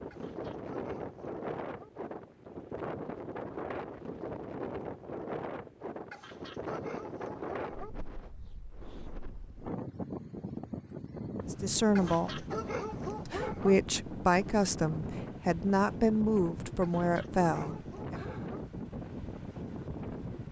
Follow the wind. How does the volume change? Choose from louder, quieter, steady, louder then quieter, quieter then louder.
steady.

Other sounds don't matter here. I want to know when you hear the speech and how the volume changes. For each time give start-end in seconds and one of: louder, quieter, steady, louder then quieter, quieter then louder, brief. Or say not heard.
11.5-12.4 brief
13.2-18.2 steady.